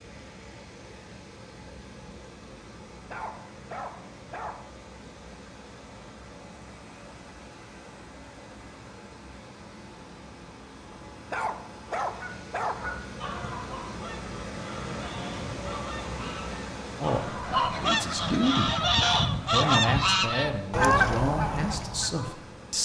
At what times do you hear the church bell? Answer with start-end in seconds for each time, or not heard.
not heard.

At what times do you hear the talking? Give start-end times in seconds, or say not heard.
17.0-18.7, 19.4-22.8.